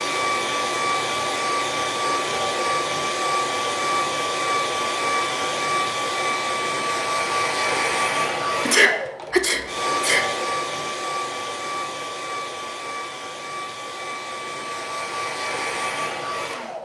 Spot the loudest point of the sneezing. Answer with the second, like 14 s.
9 s.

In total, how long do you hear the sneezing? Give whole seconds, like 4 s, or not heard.
2 s.